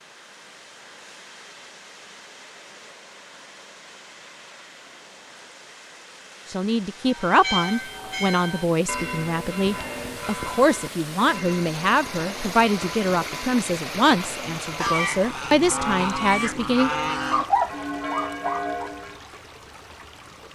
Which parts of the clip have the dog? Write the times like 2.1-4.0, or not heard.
17.3-18.9.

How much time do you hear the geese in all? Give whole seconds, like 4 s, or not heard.
3 s.